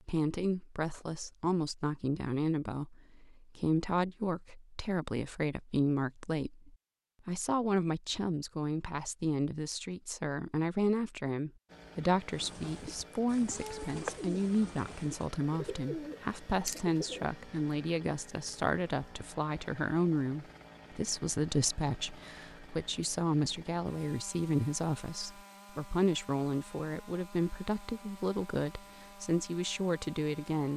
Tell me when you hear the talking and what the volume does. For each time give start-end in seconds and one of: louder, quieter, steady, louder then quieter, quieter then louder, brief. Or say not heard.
0.1-30.7 steady.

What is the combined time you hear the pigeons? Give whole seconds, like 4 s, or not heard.
5 s.